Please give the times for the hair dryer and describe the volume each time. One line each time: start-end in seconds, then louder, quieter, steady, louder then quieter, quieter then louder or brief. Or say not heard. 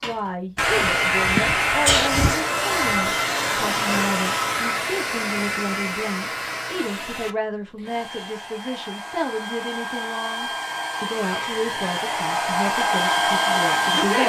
0.0-14.2 quieter then louder.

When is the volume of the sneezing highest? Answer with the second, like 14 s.
2 s.